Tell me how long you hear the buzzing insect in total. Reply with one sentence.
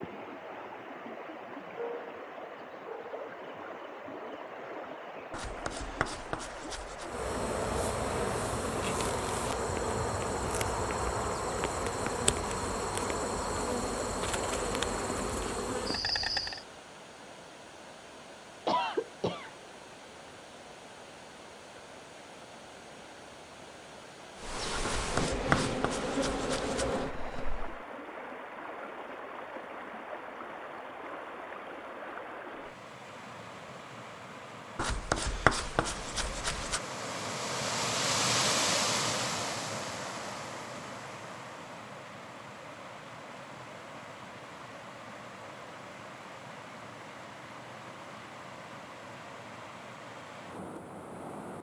The buzzing insect can be heard for 13 seconds in total.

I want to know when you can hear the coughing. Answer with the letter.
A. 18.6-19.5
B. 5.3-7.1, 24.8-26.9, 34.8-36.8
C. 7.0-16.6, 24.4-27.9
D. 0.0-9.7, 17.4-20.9
A.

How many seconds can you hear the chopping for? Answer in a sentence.
You can hear the chopping for 6 seconds altogether.